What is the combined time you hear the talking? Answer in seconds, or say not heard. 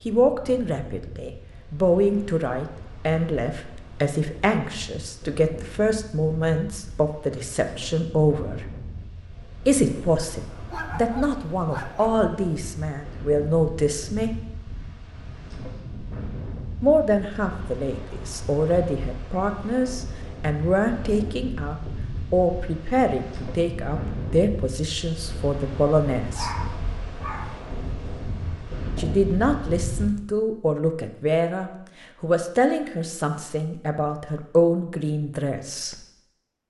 30 s.